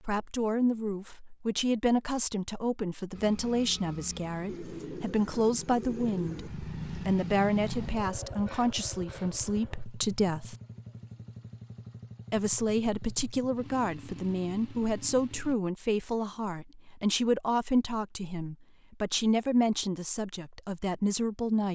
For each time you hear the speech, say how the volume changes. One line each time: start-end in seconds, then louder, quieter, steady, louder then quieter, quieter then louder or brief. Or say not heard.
0.1-10.6 steady
12.3-21.7 steady.